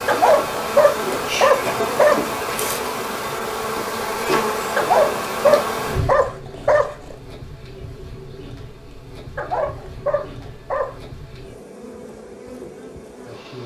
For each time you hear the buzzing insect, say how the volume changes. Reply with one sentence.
You can hear the buzzing insect from 0.0 to 13.6 s, getting quieter.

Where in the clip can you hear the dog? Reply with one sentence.
You can hear the dog from 0.1 to 2.3 s, from 4.8 to 7.2 s and from 9.3 to 11.0 s.